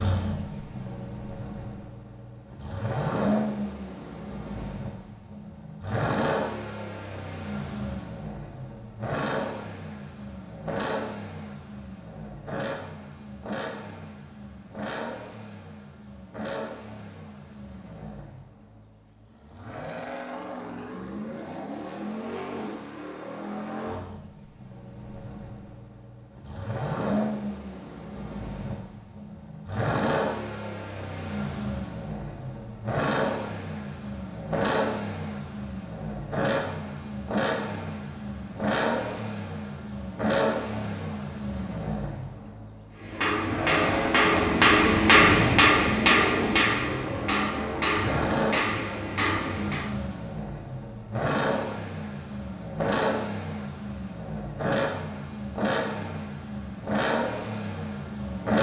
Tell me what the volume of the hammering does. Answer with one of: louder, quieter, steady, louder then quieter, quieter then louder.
louder then quieter.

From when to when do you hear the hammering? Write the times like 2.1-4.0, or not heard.
43.0-49.9.